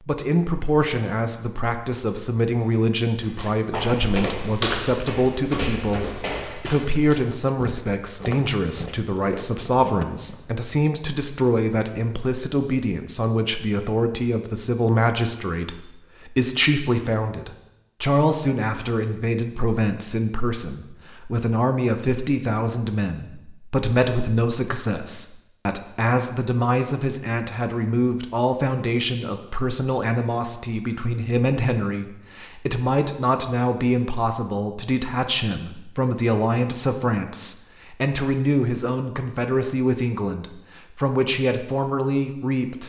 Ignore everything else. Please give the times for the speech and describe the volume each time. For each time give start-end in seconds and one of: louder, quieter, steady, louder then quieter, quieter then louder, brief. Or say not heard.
0.1-42.8 steady.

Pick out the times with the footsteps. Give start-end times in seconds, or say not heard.
3.2-10.5.